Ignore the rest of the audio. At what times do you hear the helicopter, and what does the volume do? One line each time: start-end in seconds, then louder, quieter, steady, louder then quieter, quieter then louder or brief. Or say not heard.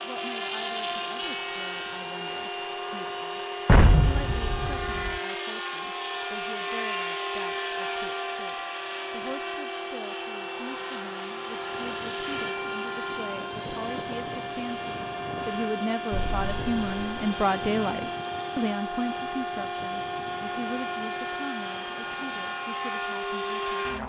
0.0-24.0 steady.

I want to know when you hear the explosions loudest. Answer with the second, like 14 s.
4 s.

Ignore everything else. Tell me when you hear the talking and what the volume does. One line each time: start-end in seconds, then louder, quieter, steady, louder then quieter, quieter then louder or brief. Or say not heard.
0.0-24.0 louder then quieter.